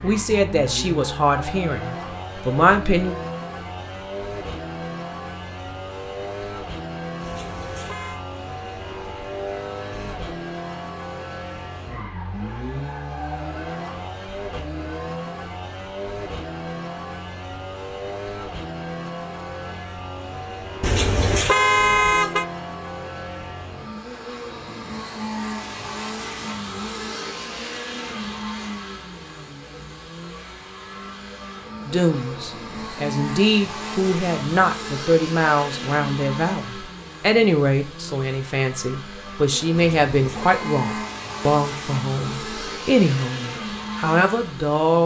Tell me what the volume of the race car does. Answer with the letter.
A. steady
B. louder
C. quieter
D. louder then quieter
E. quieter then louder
A.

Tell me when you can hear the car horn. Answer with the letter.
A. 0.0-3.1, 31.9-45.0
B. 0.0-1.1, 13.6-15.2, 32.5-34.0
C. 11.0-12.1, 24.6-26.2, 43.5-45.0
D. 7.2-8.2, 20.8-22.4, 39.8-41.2
D.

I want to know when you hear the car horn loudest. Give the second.
22 s.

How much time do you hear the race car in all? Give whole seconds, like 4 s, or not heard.
45 s.